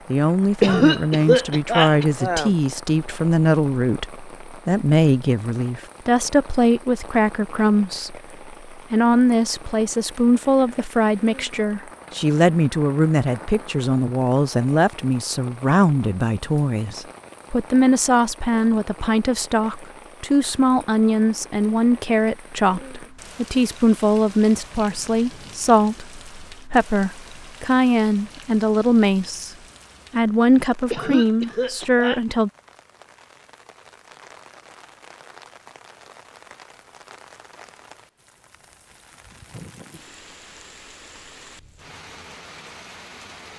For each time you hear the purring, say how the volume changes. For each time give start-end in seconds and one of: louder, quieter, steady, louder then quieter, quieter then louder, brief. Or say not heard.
not heard.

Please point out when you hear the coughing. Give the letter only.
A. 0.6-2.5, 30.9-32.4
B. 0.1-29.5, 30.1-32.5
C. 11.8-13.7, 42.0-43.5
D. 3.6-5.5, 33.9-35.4
A.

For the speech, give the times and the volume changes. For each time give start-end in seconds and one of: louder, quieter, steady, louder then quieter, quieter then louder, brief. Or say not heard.
0.1-29.5 steady
30.1-32.5 brief.